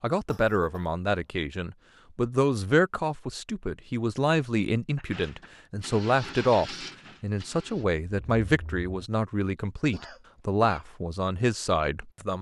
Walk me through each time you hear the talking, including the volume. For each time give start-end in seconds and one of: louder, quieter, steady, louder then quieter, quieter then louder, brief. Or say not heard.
0.0-12.3 steady.